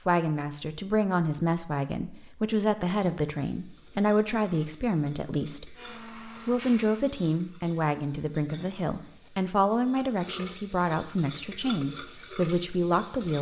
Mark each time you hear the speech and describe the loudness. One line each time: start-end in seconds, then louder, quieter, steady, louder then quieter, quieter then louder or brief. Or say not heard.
0.1-13.3 steady.